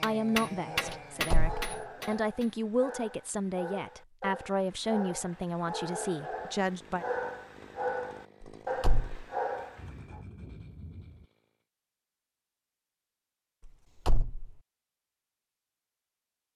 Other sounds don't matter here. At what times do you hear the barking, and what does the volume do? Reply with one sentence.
You can hear the barking from 0.7 to 10.2 s, getting louder.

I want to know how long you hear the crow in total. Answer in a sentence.
You can't hear the crow here.